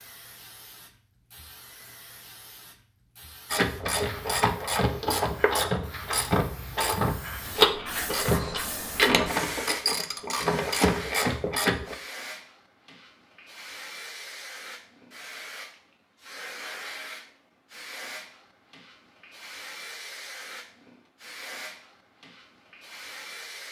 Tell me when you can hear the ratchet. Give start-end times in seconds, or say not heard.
3.5-11.9.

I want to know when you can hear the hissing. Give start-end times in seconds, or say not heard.
0.0-23.6.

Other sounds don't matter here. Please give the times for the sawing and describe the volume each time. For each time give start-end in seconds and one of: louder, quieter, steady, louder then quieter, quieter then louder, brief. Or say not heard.
not heard.